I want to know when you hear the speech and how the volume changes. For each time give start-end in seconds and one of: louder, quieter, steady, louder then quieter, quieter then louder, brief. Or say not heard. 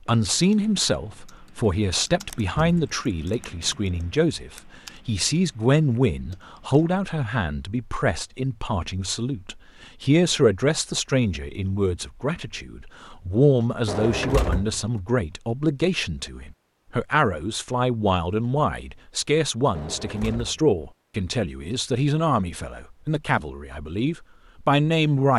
0.1-25.3 steady.